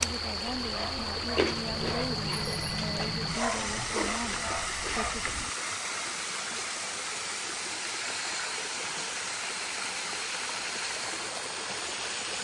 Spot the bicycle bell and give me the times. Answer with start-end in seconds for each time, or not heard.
1.4-3.4.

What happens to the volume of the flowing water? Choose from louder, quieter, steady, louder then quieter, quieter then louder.
steady.